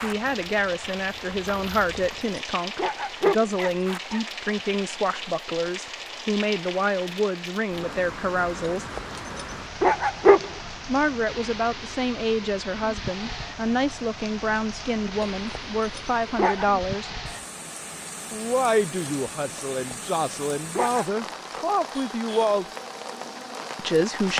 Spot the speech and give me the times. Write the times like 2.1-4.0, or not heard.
0.0-8.8, 10.8-17.1, 18.3-22.6, 23.8-24.3.